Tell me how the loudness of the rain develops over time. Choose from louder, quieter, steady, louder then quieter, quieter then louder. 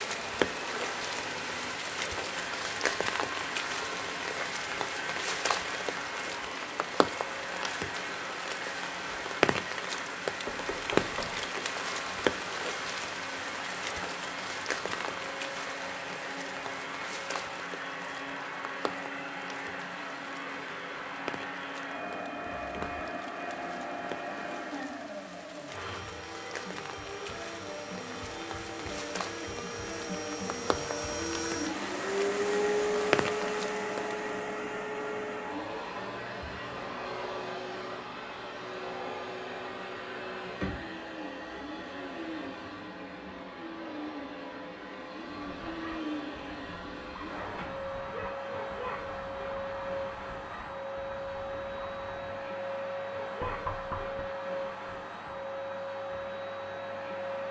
quieter then louder.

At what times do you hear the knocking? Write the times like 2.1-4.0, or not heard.
10.4-11.5, 22.4-23.0, 53.4-54.2.